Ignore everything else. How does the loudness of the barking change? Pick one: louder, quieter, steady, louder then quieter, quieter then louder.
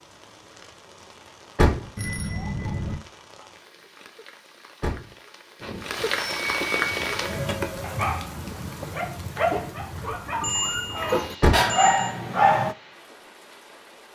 louder.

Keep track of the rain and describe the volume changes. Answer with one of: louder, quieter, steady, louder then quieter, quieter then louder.
louder then quieter.